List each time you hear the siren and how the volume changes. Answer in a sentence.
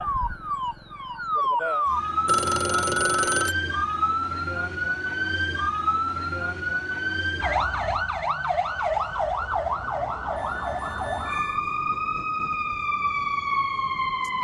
You can hear the siren from 0.0 to 14.3 s, at a steady volume.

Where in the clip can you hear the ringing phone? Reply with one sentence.
You can hear the ringing phone from 2.2 to 3.5 s and from 10.3 to 11.6 s.